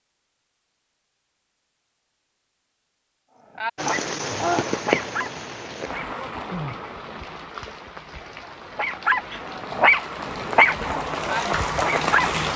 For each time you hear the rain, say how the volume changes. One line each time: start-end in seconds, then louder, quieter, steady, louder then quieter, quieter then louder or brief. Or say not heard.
3.8-12.5 quieter then louder.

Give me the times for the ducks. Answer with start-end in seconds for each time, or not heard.
not heard.